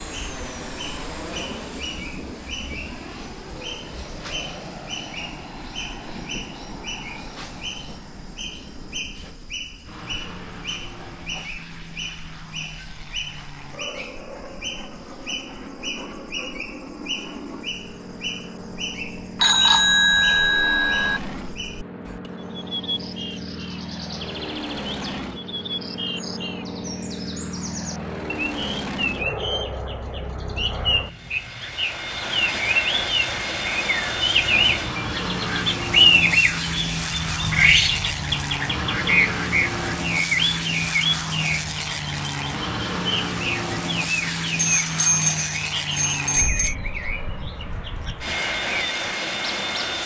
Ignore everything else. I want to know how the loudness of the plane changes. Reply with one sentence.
The volume of the plane goes up.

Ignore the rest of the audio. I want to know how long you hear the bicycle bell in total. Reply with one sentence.
You can hear the bicycle bell for 4 seconds altogether.